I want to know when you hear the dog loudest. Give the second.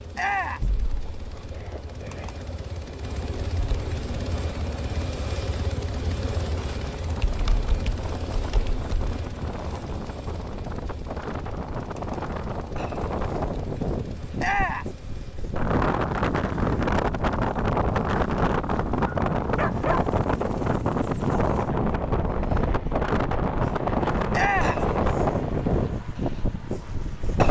20 s.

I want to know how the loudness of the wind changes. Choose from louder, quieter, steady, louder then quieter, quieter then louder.
louder.